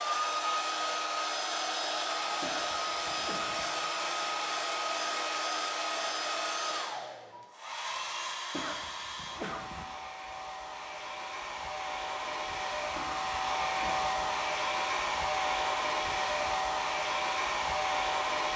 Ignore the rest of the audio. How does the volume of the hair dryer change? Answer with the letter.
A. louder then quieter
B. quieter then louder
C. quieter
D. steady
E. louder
B.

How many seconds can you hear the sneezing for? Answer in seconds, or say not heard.
4 s.